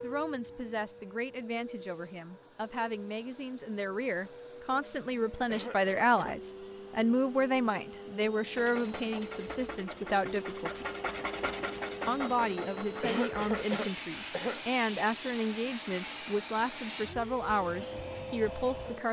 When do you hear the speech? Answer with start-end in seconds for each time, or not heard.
0.0-10.9, 12.1-19.0.